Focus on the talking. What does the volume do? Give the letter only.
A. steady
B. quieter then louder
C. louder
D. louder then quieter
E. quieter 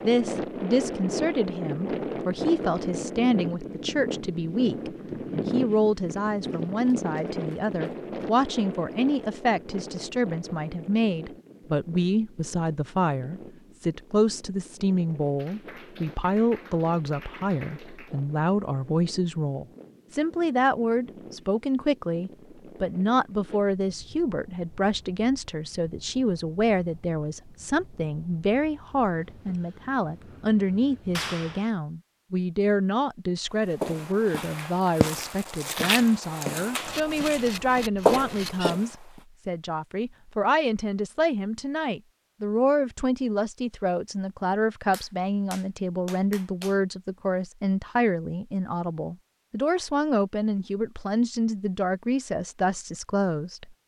A.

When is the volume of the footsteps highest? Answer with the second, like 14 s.
38 s.